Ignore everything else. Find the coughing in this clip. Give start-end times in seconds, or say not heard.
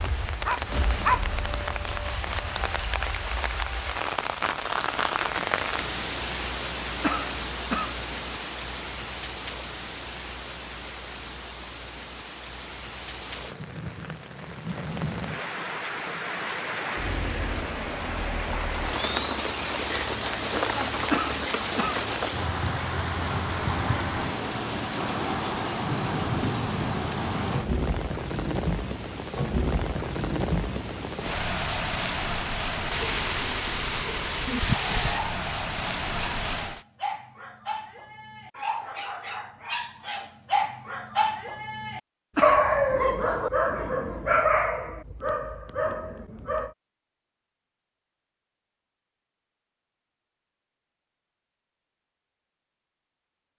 7.0-8.1, 21.1-22.1, 42.4-42.8.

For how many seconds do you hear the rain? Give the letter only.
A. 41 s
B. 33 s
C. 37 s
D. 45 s
C.